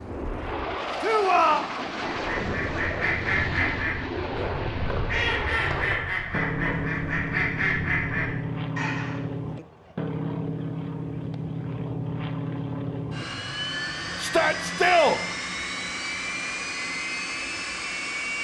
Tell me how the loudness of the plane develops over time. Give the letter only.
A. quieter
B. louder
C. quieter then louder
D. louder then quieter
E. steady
E.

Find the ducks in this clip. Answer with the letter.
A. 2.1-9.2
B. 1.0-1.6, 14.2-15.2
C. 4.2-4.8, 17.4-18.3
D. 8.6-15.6
A.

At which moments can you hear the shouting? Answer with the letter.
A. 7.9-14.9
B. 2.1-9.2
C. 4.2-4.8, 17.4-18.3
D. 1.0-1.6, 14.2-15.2
D.